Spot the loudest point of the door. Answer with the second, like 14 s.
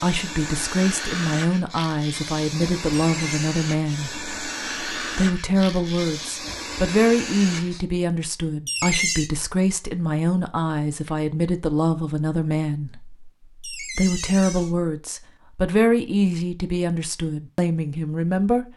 9 s.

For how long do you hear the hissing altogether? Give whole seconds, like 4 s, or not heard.
8 s.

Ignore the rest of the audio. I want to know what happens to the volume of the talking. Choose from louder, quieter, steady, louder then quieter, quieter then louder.
steady.